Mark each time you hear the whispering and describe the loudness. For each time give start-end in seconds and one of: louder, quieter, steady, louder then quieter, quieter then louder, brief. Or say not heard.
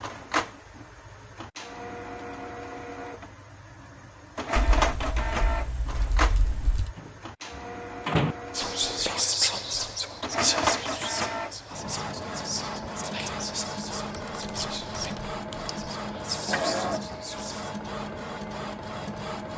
8.6-17.7 quieter.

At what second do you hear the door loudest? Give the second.
8 s.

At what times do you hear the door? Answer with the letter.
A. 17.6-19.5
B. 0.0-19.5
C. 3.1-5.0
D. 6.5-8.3
D.